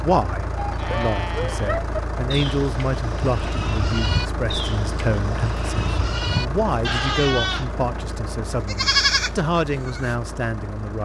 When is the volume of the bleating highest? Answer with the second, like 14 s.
9 s.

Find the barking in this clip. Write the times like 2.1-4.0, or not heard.
not heard.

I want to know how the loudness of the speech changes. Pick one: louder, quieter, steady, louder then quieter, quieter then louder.
steady.